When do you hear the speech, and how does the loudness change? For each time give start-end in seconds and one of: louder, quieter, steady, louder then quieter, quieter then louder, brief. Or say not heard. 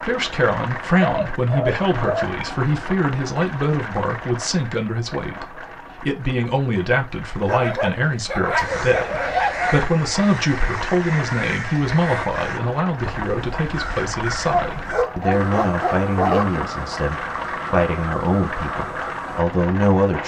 0.0-20.2 steady.